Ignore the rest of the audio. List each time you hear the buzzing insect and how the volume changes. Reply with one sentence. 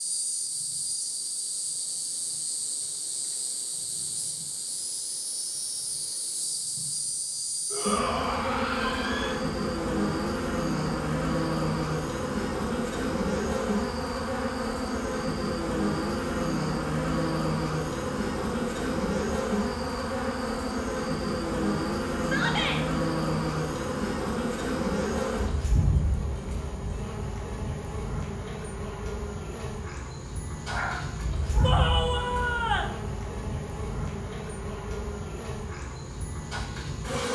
The buzzing insect can be heard from 0.0 to 37.3 s, getting louder then quieter.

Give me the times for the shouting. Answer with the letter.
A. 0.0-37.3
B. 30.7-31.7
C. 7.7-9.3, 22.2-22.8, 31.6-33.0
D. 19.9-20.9
C.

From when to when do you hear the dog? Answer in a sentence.
You can hear the dog from 30.7 to 31.7 s.